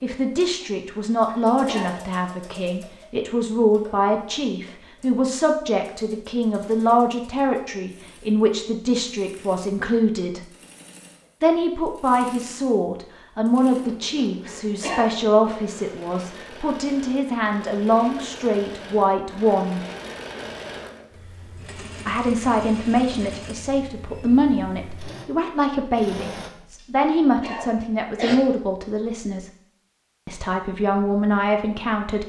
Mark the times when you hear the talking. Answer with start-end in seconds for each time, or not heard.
0.0-10.4, 11.4-19.8, 22.1-29.5, 30.2-32.2.